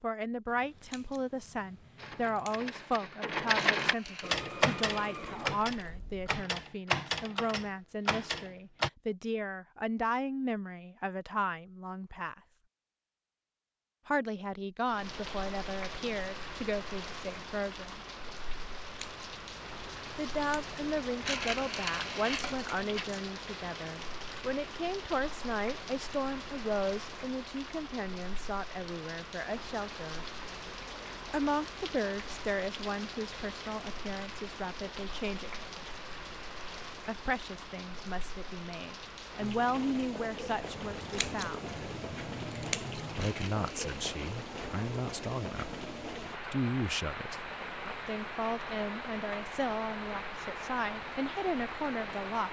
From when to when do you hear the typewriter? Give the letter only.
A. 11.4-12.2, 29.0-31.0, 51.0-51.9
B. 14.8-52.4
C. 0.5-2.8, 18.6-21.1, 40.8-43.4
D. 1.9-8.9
D.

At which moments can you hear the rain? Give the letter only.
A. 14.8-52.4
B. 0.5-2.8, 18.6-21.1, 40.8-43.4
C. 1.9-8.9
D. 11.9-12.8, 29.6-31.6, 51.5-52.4
A.